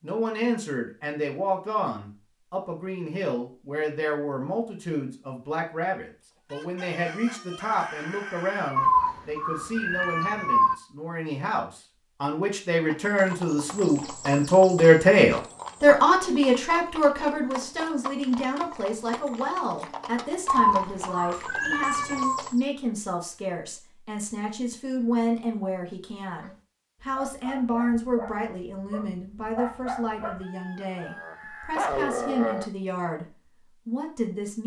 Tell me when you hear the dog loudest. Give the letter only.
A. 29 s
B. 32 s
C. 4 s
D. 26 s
B.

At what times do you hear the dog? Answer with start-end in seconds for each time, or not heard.
26.4-32.6.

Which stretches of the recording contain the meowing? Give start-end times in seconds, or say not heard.
8.8-10.8, 20.4-22.4.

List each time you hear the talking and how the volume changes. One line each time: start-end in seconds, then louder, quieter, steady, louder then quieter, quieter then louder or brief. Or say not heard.
0.0-34.6 louder then quieter.